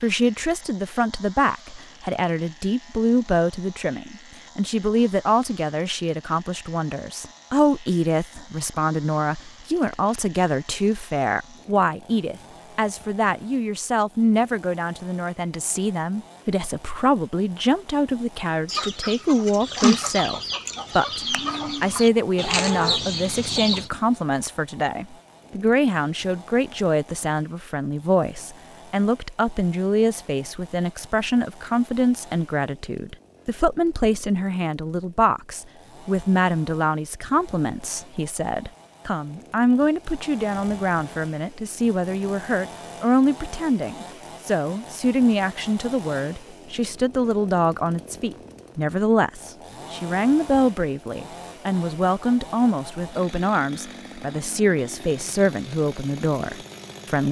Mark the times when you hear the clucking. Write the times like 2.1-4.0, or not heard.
18.6-23.9.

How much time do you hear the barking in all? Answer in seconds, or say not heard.
not heard.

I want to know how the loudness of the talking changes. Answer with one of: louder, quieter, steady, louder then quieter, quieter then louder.
steady.